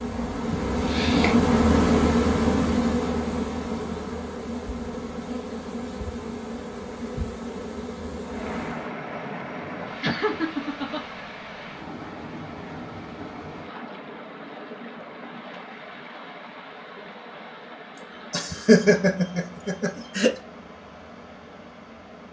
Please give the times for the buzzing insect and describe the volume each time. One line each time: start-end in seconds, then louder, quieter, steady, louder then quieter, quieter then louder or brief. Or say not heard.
0.0-8.9 quieter.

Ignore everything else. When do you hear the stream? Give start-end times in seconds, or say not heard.
8.2-22.2.